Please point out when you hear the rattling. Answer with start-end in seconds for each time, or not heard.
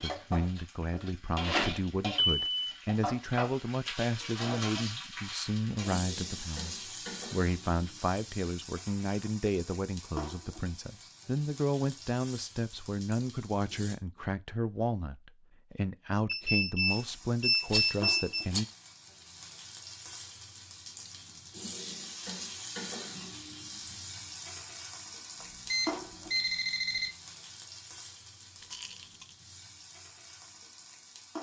1.4-2.5, 17.6-18.7, 28.6-29.4.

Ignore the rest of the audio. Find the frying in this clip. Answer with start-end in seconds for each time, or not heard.
0.0-13.9, 16.9-31.3.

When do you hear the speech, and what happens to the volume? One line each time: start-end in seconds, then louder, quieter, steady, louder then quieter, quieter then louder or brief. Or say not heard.
0.0-18.6 steady.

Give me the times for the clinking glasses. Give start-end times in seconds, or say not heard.
not heard.